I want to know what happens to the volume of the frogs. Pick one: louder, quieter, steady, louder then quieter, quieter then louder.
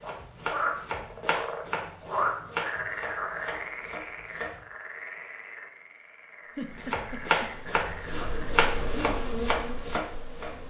quieter.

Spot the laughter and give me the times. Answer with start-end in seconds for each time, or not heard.
6.5-7.5.